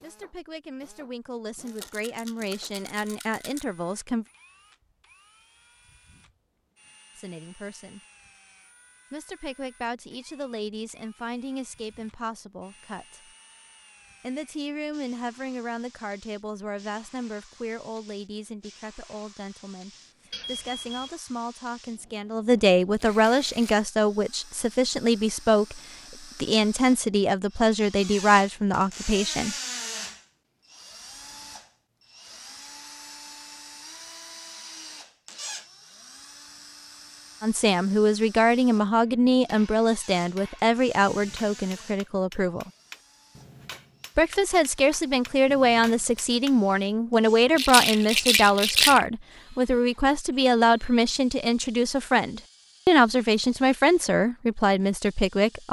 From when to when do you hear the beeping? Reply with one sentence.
You can hear the beeping from 20.3 to 21.1 s.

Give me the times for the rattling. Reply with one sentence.
You can hear the rattling from 1.6 to 3.6 s, from 22.9 to 23.9 s and from 47.5 to 49.0 s.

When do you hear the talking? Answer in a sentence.
You can hear the talking from 0.0 to 4.2 s, from 7.2 to 8.0 s, from 9.1 to 13.3 s, from 14.2 to 29.6 s, from 37.4 to 42.7 s and from 44.1 to 55.6 s.